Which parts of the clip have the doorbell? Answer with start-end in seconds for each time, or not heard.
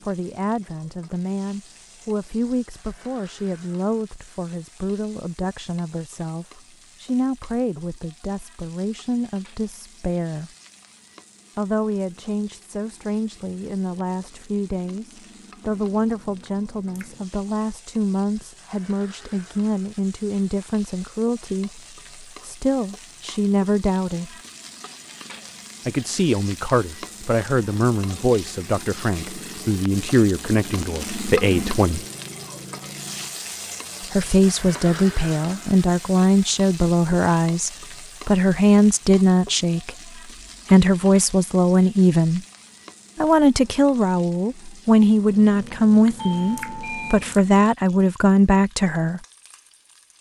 46.1-47.2.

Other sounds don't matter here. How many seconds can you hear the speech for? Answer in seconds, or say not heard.
43 s.